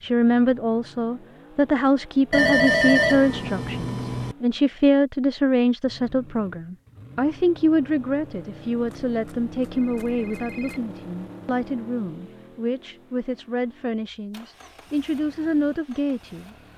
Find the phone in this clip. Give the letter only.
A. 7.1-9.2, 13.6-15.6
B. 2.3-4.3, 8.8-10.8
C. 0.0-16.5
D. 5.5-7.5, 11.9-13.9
B.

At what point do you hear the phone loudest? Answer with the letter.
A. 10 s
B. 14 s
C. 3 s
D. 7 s
C.